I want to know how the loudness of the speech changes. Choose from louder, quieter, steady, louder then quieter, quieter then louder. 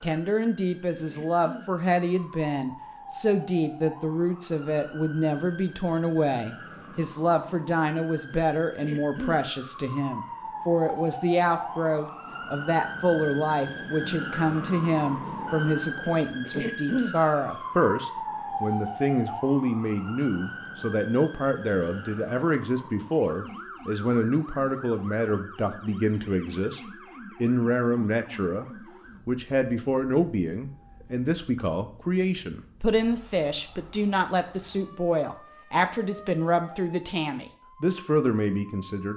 steady.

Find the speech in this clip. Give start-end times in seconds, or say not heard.
0.0-39.1.